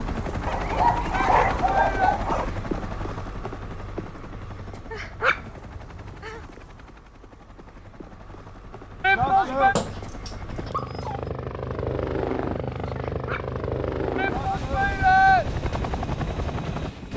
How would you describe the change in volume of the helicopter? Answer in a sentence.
The volume of the helicopter goes down, then up.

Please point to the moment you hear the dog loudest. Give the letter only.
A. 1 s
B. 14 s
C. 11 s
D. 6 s
A.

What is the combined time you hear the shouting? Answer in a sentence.
You can hear the shouting for 3 seconds altogether.